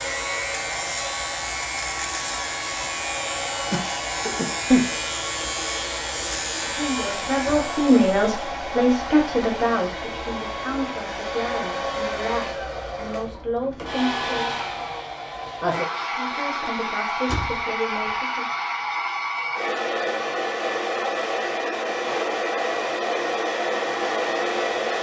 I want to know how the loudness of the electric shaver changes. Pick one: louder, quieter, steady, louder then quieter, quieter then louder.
steady.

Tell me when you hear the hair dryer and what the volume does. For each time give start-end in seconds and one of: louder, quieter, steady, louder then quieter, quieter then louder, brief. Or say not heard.
0.0-24.9 louder.